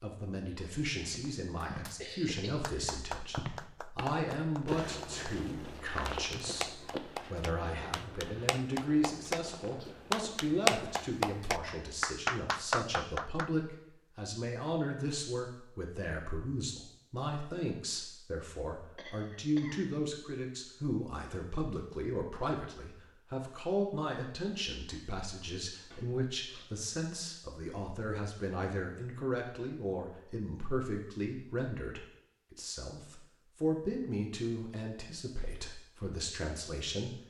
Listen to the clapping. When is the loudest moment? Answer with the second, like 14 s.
11 s.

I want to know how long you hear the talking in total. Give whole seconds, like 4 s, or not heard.
37 s.